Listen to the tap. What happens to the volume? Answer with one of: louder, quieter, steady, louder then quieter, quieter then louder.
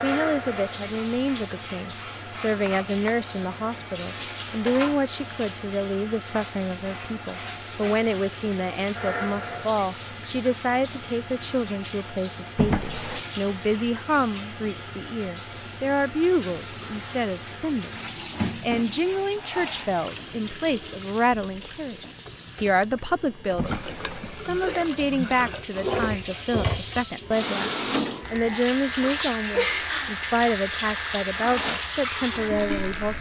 louder.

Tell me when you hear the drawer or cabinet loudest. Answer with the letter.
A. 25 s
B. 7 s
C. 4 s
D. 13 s
D.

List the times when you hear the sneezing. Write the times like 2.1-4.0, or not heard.
not heard.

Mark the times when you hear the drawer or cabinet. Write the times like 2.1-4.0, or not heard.
2.6-3.2, 12.6-13.2, 23.6-24.5.